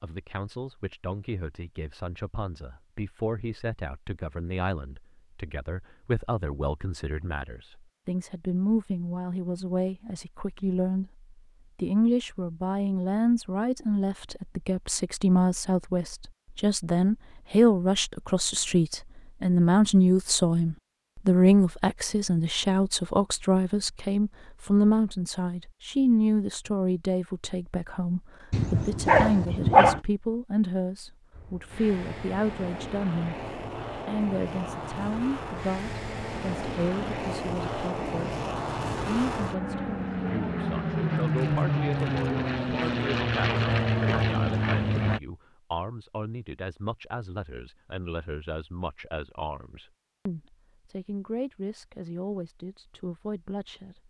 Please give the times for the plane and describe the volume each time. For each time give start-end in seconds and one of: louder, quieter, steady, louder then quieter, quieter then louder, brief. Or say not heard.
31.3-45.2 louder.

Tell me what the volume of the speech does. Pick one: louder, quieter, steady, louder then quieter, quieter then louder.
louder then quieter.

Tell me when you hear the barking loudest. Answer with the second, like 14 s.
30 s.